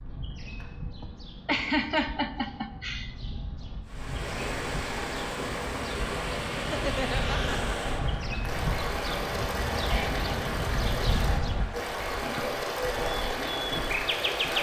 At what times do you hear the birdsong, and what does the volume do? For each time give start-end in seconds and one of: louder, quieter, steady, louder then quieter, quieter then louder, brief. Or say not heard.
0.0-14.5 louder.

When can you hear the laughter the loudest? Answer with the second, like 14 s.
2 s.